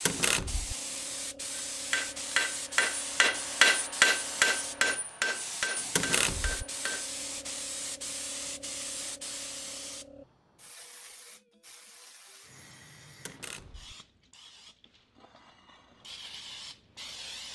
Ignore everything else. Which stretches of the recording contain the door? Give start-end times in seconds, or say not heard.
0.1-0.8, 6.0-6.7, 13.2-13.9.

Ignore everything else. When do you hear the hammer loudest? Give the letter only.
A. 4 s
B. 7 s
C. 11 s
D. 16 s
A.